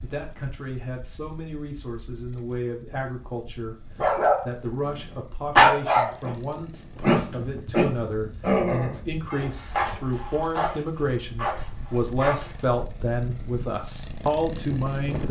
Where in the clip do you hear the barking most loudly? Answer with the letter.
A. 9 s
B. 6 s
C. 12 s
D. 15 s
B.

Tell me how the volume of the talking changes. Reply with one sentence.
The volume of the talking goes up.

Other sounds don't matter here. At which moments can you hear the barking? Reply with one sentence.
You can hear the barking from 4.0 to 5.0 s, from 5.5 to 6.3 s and from 7.0 to 12.7 s.